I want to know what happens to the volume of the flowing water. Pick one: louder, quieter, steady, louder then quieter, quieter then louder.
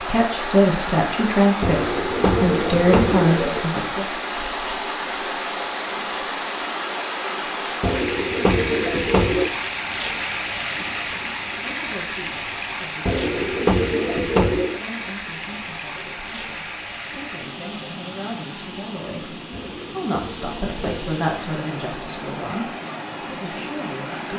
quieter.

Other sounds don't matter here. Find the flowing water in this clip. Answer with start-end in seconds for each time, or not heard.
0.0-24.3.